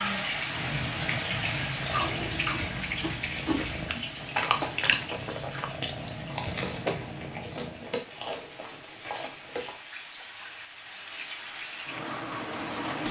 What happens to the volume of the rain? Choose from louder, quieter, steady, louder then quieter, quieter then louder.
quieter then louder.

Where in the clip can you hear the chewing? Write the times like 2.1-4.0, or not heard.
1.8-9.8.